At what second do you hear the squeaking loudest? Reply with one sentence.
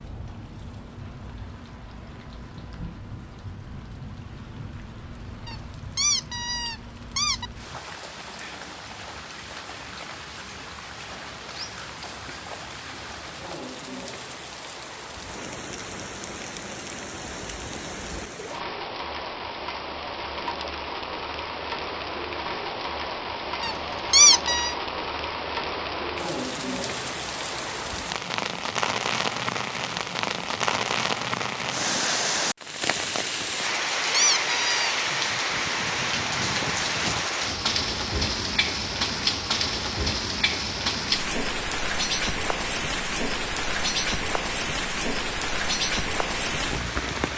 The volume of the squeaking peaks at 24 seconds.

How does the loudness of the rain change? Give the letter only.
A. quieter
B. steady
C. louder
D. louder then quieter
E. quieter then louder
C.